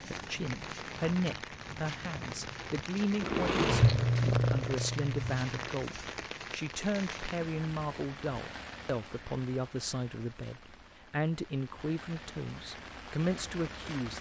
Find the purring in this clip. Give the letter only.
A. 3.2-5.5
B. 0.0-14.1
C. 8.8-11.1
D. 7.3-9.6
A.